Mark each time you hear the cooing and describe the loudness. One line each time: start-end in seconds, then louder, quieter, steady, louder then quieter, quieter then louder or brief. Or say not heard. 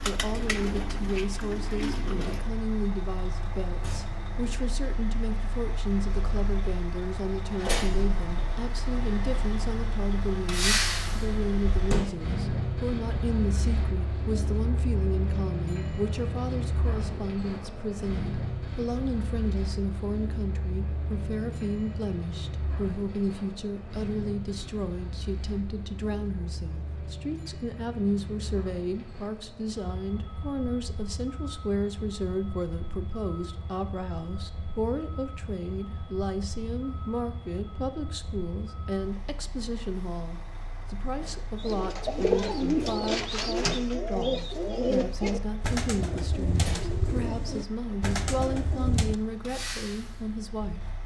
0.0-2.4 brief
41.5-49.1 quieter.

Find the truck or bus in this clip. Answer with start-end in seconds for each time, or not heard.
0.0-51.0.